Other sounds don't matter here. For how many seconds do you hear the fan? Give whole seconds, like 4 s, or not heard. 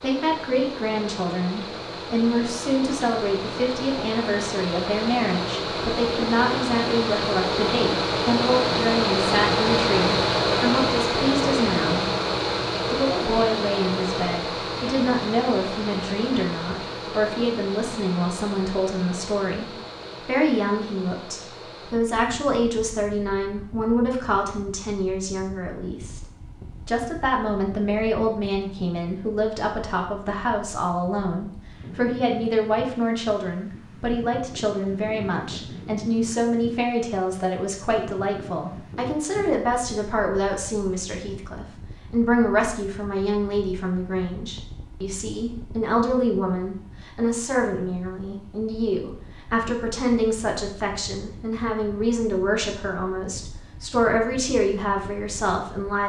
56 s.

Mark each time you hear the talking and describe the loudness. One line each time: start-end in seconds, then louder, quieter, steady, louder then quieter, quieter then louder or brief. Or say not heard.
0.0-12.1 steady
12.9-26.2 steady
26.9-56.0 steady.